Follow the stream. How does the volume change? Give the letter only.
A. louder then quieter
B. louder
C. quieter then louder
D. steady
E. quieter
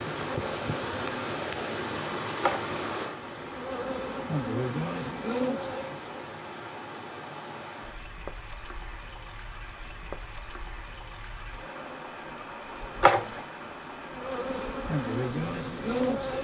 E.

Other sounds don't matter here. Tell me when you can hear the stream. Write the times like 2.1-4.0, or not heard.
0.0-16.3.